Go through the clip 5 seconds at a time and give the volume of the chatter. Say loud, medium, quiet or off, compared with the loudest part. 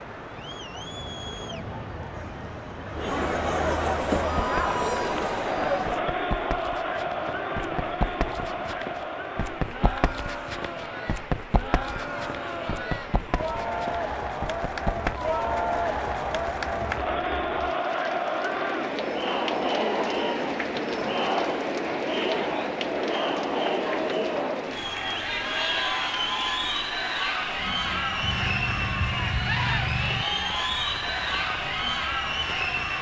loud, loud, medium, loud, loud, loud, loud.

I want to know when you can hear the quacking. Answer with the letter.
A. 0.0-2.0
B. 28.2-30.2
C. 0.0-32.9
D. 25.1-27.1
B.